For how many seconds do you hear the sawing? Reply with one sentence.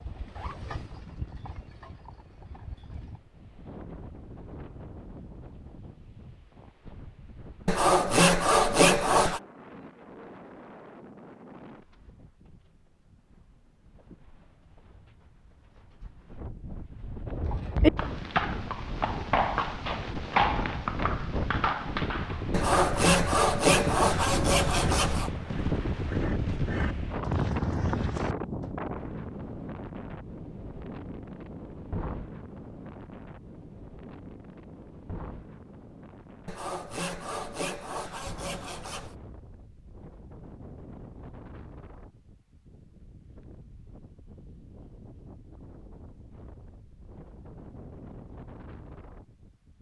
You can hear the sawing for 7 seconds altogether.